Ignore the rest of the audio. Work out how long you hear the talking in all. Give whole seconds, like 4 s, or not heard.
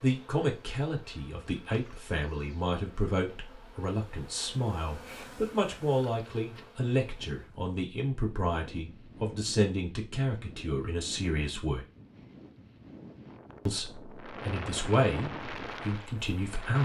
15 s.